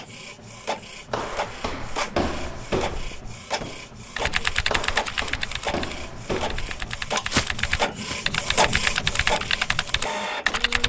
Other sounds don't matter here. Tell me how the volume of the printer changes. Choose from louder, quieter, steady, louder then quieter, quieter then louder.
louder.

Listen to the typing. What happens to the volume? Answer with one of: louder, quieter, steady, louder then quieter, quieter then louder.
quieter then louder.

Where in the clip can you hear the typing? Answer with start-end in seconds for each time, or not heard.
4.2-10.8.